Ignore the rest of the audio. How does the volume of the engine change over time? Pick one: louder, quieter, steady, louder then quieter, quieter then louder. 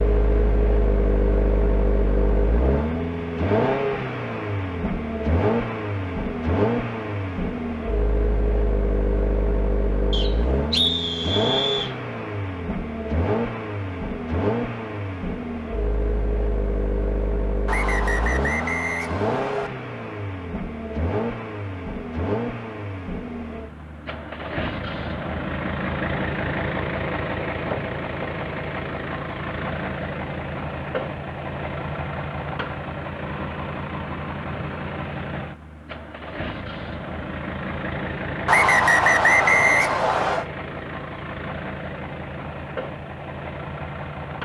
quieter.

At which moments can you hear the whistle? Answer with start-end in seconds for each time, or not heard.
10.1-11.9, 17.6-19.7, 38.5-40.5.